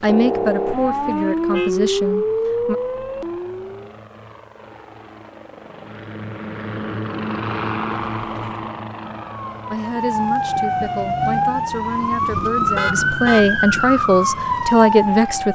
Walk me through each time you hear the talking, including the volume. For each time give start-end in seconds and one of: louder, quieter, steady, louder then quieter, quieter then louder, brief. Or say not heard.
0.0-2.8 brief
9.7-15.4 louder.